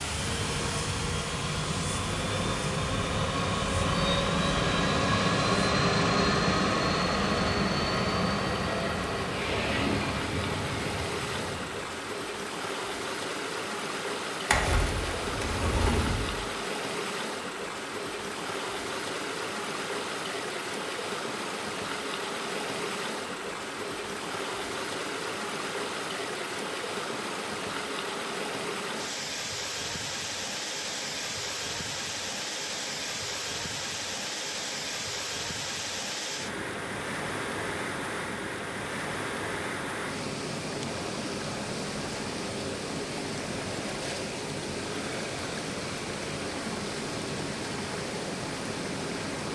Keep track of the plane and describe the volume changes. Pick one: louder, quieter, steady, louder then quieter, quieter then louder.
louder then quieter.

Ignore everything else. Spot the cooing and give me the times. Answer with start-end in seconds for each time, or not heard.
14.4-16.4.